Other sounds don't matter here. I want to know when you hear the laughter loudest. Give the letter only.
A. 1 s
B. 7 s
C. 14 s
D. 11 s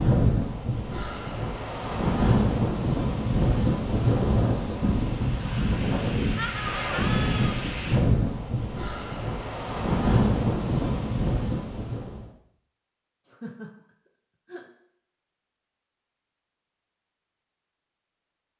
B.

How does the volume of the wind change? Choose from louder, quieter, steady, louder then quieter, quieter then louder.
steady.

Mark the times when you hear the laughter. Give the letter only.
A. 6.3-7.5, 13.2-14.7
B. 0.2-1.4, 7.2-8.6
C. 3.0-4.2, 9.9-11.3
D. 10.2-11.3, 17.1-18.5
A.